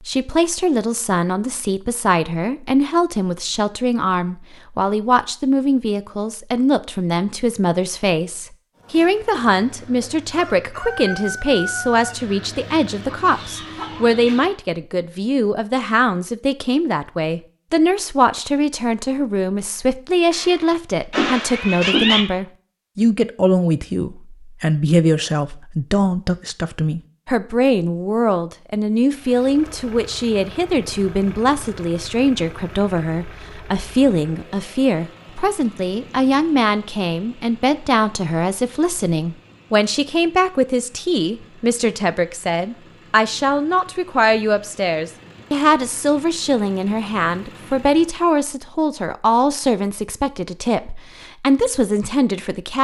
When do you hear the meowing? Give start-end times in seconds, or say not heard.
20.3-22.2.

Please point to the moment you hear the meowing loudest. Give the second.
22 s.